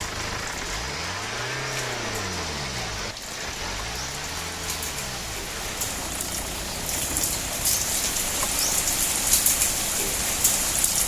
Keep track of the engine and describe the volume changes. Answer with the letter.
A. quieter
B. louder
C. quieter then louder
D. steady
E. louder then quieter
A.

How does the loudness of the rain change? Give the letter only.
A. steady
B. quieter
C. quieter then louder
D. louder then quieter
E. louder
E.